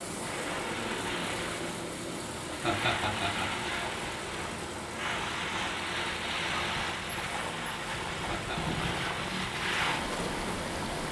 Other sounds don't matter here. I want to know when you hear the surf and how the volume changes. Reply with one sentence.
You can hear the surf from 0.0 to 11.0 s, getting louder.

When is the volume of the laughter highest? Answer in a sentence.
The loudest moment of the laughter is at 3 seconds.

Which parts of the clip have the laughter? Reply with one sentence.
The laughter can be heard from 2.5 to 3.6 s and from 8.2 to 8.8 s.